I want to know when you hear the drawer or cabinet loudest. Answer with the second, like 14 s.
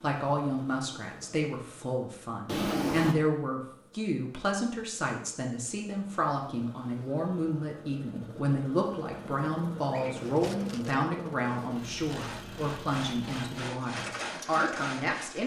3 s.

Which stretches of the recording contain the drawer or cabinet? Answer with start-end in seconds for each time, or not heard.
2.5-3.1, 9.9-10.8.